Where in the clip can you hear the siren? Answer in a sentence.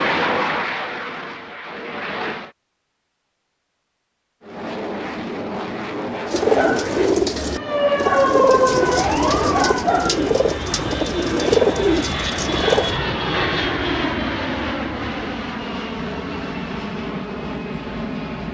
The siren can be heard from 7.3 to 9.9 s.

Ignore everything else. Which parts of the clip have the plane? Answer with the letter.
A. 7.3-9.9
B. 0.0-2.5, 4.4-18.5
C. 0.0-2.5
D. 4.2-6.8
B.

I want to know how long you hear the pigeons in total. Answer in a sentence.
The pigeons can be heard for 7 seconds in total.